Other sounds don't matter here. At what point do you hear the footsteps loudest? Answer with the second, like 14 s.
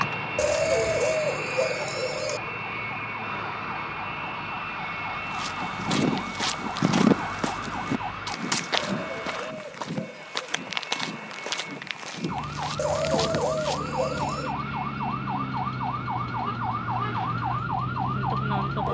7 s.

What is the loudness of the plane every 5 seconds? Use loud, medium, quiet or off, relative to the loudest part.
loud, loud, medium, medium.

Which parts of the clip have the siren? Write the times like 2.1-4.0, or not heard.
0.0-8.3, 12.2-18.8.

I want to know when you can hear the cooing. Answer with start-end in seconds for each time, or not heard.
0.3-2.4, 8.8-10.6, 12.8-14.6.